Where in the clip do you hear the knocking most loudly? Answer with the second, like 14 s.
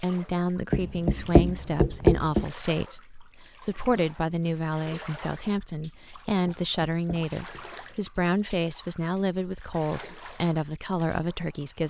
2 s.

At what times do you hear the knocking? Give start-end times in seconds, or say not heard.
0.7-2.5, 6.5-7.6.